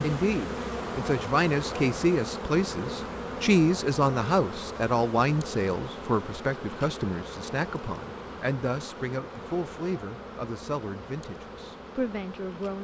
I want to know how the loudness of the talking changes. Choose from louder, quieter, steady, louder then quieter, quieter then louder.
quieter.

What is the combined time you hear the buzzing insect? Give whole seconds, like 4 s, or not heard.
13 s.